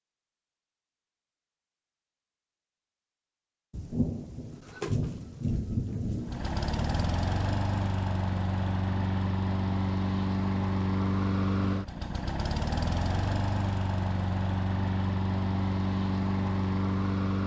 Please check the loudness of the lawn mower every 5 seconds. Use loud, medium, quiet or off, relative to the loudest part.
off, loud, loud, loud.